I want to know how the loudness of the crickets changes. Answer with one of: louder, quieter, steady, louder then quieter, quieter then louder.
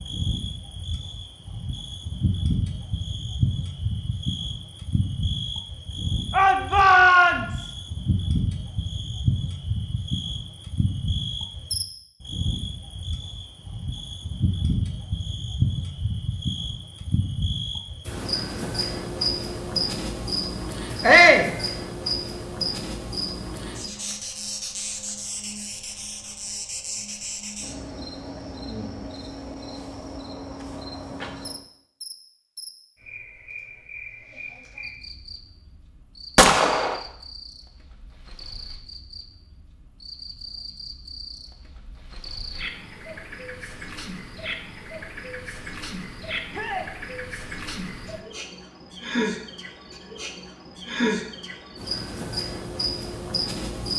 quieter then louder.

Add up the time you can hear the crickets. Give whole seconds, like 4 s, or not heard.
54 s.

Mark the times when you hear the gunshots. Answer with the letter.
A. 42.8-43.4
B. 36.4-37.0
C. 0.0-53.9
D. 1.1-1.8
B.